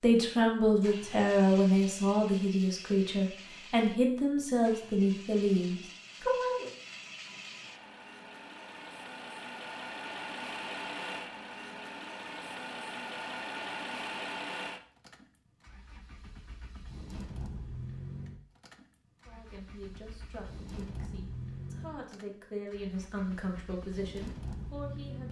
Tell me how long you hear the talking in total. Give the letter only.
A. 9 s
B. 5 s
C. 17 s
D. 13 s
D.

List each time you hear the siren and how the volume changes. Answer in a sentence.
You can't hear the siren here.